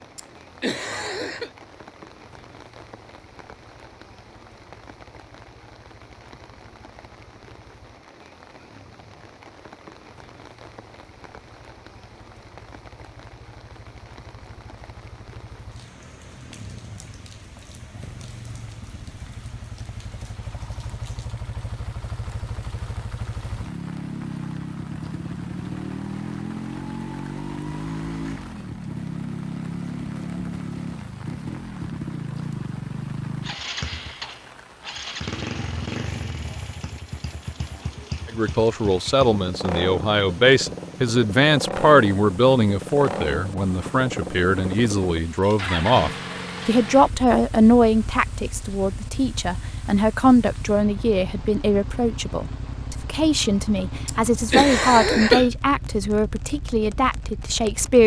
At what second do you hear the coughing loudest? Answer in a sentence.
The loudest moment of the coughing is at 55 seconds.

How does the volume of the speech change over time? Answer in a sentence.
The volume of the speech stays about the same.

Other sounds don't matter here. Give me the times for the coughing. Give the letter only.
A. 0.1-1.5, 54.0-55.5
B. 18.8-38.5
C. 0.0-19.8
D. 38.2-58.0
A.